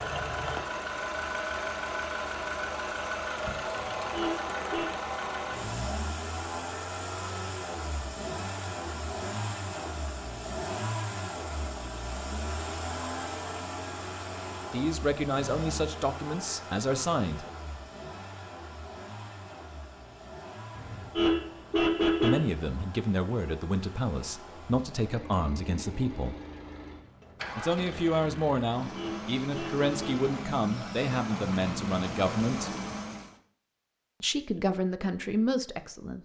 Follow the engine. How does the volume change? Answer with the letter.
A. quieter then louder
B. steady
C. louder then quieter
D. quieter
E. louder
A.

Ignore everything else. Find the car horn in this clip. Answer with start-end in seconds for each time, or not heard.
3.8-4.9, 20.8-22.5, 28.8-30.2.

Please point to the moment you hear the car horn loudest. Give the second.
22 s.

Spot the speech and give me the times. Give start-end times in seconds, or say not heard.
14.7-17.5, 22.2-26.4, 27.6-32.7, 34.2-36.1.